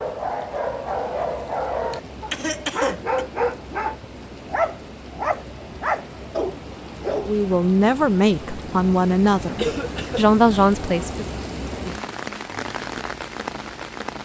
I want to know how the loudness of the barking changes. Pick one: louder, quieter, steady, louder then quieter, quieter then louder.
steady.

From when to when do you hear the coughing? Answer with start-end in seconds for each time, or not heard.
1.9-3.2, 9.6-10.2.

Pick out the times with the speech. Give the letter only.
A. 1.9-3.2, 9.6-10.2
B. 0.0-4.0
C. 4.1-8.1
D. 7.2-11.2
D.